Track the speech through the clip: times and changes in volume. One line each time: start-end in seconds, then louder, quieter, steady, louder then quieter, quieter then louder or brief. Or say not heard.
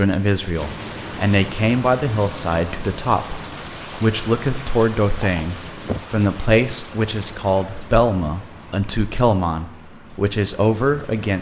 0.0-11.3 steady.